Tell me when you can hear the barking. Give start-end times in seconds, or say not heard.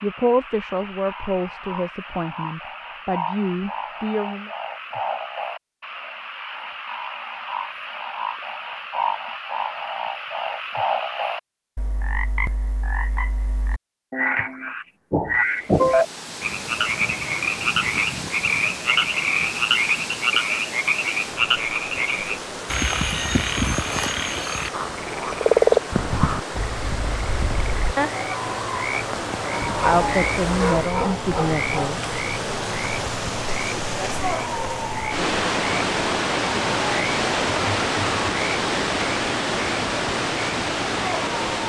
29.6-31.9.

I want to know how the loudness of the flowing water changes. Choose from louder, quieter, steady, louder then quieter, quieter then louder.
louder.